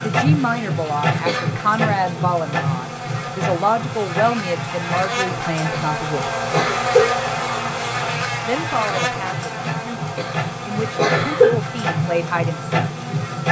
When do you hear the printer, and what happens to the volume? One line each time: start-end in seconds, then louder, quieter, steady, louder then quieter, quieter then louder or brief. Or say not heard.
0.0-13.4 quieter then louder.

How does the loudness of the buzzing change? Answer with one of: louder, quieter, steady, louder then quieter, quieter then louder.
louder then quieter.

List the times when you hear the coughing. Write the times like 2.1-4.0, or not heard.
1.2-1.7, 5.7-7.1, 10.2-11.6.